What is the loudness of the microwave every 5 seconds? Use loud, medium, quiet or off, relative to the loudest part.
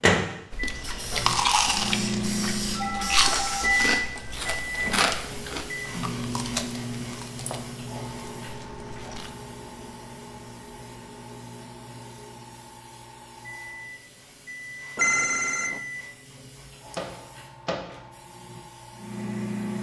loud, medium, quiet, medium.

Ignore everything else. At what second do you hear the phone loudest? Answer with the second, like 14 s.
15 s.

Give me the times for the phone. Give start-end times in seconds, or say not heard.
2.8-3.9, 7.5-8.1, 14.9-15.8.